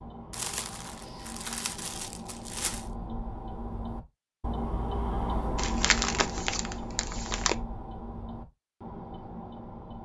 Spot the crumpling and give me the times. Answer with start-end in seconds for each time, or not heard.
0.3-2.9, 5.5-7.5.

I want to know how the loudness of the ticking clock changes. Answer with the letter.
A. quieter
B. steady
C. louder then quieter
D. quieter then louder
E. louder
C.